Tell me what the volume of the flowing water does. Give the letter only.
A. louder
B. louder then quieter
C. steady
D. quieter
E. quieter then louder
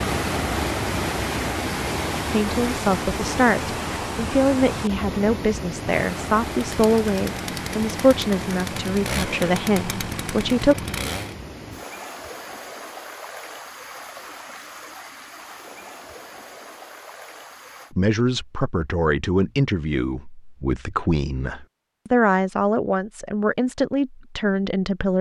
D.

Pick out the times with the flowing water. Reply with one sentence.
You can hear the flowing water from 0.0 to 17.9 s.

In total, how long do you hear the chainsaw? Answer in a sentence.
The chainsaw can be heard for 5 seconds in total.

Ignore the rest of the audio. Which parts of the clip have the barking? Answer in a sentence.
You can't hear the barking here.